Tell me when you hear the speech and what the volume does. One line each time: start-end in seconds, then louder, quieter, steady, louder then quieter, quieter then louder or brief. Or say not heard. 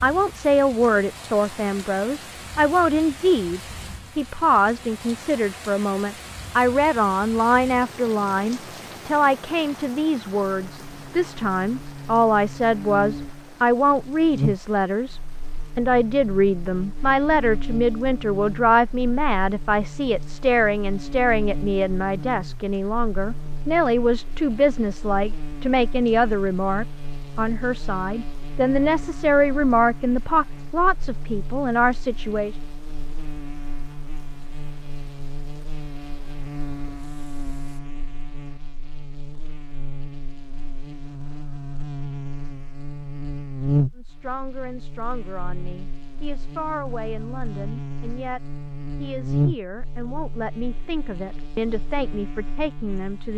0.0-32.5 steady
44.0-53.3 louder.